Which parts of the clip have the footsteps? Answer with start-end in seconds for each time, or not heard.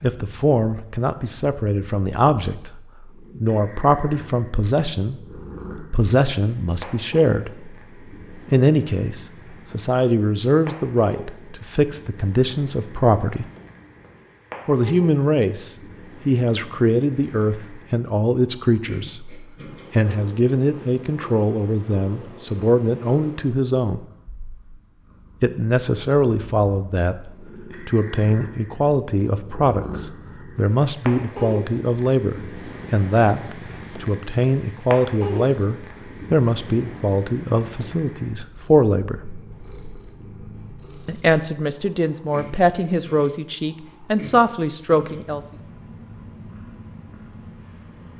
not heard.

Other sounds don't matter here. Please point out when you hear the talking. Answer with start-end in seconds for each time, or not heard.
0.0-13.4, 14.7-24.1, 25.4-39.1, 41.0-45.4.